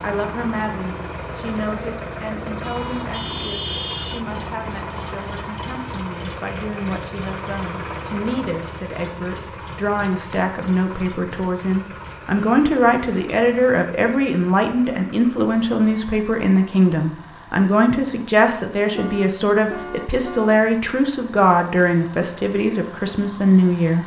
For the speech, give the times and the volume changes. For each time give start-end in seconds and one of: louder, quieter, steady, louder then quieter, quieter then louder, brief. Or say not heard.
0.0-24.0 louder.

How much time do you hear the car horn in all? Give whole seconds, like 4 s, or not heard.
3 s.